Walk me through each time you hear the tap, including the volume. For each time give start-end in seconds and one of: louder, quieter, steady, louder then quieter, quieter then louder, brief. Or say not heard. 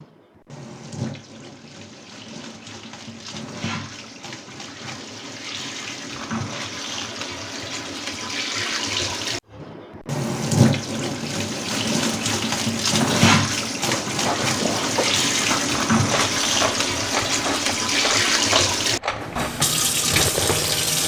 0.0-21.0 louder.